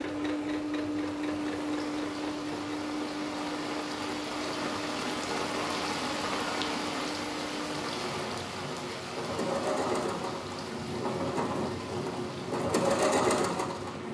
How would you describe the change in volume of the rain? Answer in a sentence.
The loudness of the rain goes up, then down.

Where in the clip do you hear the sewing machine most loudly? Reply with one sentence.
The loudest moment of the sewing machine is at 13 seconds.